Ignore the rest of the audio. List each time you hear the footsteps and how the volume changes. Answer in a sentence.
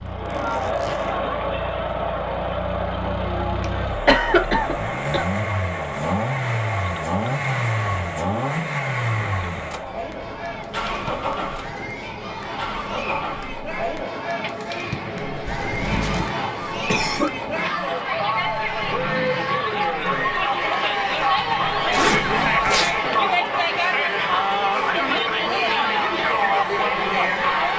You can't hear the footsteps here.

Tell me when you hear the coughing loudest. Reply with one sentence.
The volume of the coughing peaks at 4 seconds.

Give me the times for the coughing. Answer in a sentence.
The coughing can be heard from 3.6 to 5.2 s and from 16.1 to 17.3 s.